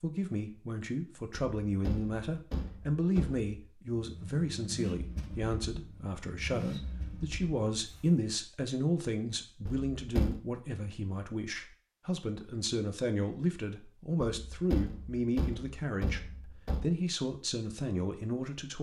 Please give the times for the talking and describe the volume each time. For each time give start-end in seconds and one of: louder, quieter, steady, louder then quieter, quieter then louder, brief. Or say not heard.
0.0-18.7 steady.